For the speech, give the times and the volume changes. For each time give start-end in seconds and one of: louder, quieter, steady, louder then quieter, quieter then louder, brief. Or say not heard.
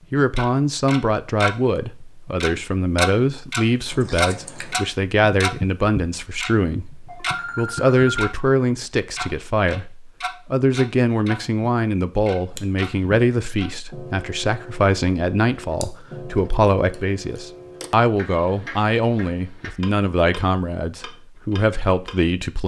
0.1-22.6 steady.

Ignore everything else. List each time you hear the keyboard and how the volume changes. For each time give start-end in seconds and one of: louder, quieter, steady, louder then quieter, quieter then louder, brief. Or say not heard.
not heard.